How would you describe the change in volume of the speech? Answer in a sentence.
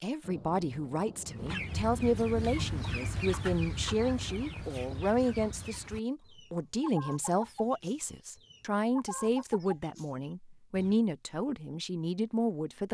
The loudness of the speech stays about the same.